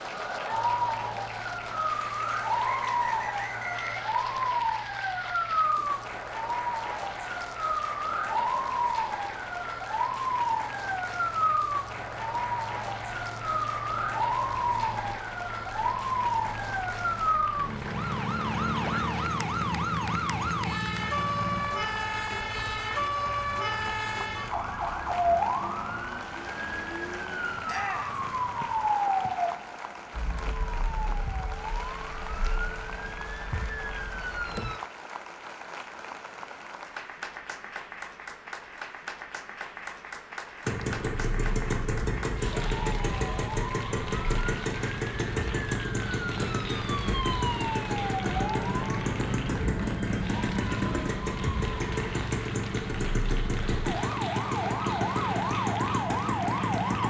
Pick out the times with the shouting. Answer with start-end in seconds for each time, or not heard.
27.6-28.2.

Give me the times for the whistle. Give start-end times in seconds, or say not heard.
2.6-4.7, 28.6-29.3.